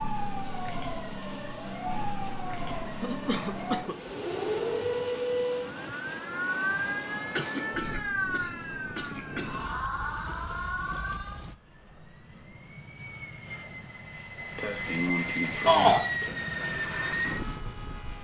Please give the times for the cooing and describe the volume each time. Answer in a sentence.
The cooing can't be heard in this clip.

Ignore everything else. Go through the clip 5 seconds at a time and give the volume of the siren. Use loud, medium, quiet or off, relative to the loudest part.
loud, loud, loud, off.